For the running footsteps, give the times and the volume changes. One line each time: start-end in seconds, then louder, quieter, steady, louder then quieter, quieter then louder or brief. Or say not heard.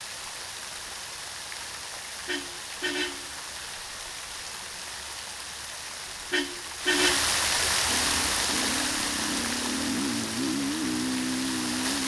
not heard.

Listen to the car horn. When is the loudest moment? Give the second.
7 s.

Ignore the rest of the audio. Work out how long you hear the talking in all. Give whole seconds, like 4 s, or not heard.
not heard.